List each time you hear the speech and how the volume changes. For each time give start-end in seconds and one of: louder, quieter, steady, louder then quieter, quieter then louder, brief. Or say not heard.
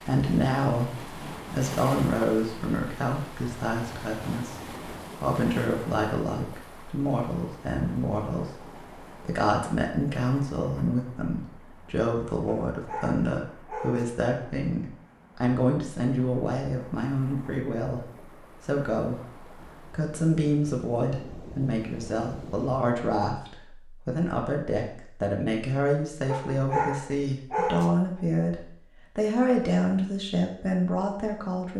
0.0-31.7 steady.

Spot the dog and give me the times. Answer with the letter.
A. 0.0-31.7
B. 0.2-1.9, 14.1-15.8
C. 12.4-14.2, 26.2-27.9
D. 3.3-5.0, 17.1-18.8
C.